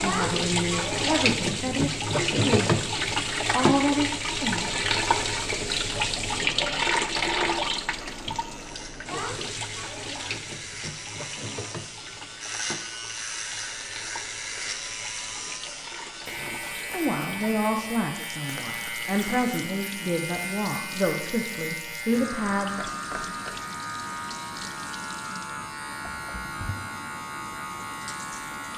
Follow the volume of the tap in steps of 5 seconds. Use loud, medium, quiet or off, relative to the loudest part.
loud, loud, quiet, quiet, quiet, quiet.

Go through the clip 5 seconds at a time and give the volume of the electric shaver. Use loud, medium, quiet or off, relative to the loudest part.
off, medium, loud, loud, loud, loud.